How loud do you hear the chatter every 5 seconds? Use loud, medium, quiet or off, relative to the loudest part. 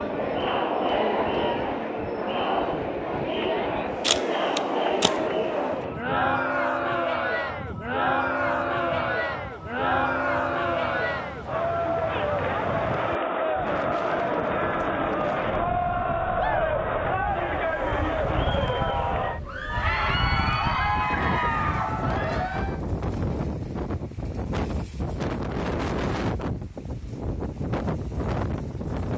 loud, loud, loud, loud, loud, off.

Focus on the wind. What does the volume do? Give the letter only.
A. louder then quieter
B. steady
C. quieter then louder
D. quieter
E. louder
E.